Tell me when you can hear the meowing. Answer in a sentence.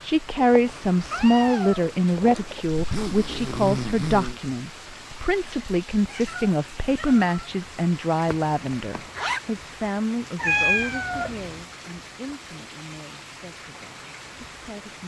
You can hear the meowing from 0.2 to 2.6 s, from 6.0 to 7.5 s and from 10.3 to 11.7 s.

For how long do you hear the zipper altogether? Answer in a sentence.
The zipper can be heard for 3 seconds in total.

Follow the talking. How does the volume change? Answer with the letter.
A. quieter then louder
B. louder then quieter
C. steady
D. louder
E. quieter
E.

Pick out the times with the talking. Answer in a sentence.
The talking can be heard from 0.0 to 15.0 s.